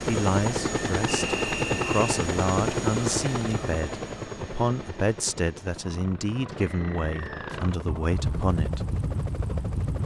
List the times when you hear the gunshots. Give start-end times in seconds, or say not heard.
not heard.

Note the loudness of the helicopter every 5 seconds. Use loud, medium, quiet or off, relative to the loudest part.
loud, medium.